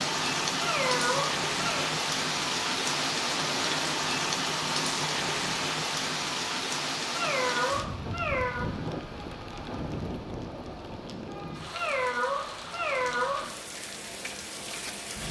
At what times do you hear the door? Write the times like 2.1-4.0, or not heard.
not heard.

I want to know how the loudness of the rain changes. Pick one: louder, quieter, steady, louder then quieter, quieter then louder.
quieter.